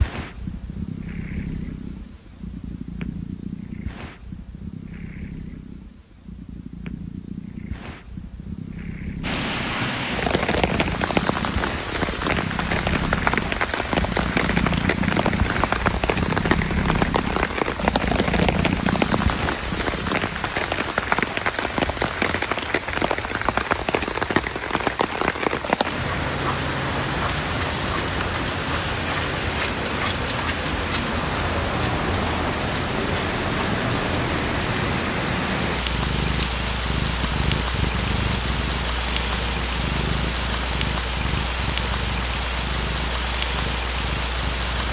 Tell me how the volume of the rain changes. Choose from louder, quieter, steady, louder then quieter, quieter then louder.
steady.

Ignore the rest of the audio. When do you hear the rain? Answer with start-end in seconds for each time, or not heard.
9.2-44.8.